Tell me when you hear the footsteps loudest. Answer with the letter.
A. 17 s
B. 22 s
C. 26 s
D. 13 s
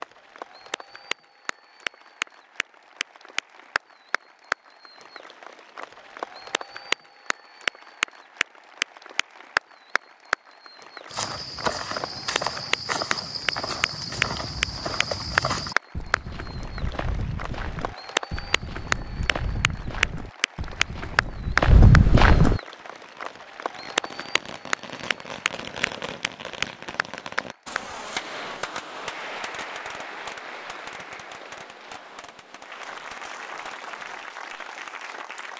B.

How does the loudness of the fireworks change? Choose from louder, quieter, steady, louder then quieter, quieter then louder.
louder then quieter.